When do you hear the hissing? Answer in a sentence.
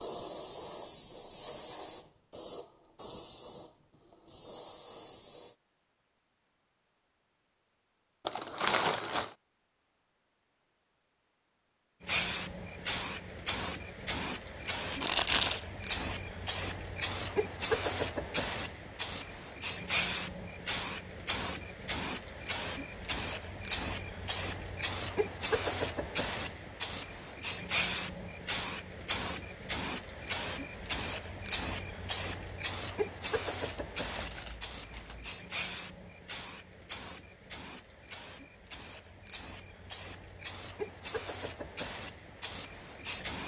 You can hear the hissing from 0.0 to 5.5 s and from 12.1 to 43.4 s.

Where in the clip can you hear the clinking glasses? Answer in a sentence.
You can't hear the clinking glasses here.